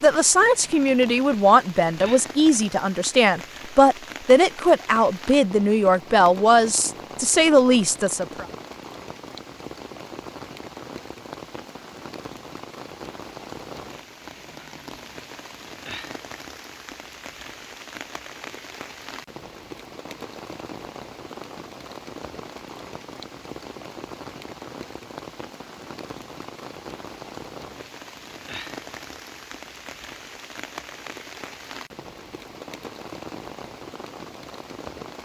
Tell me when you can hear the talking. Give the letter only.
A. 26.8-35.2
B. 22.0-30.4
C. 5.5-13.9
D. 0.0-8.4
D.